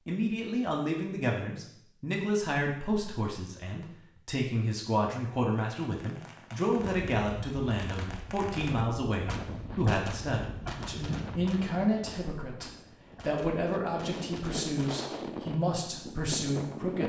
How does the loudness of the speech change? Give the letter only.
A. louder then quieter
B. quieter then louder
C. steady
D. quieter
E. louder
C.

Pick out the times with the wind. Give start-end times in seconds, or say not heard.
6.8-17.0.